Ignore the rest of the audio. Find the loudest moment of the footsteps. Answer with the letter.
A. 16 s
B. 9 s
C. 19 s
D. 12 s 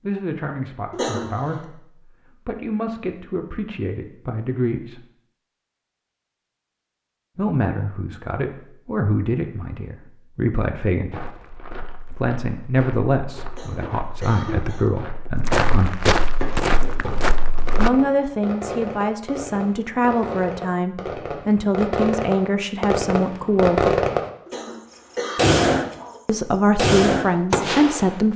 A.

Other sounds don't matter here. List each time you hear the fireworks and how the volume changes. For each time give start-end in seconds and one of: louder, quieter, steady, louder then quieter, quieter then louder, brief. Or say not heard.
16.4-24.6 louder
25.4-25.9 brief
26.8-28.2 brief.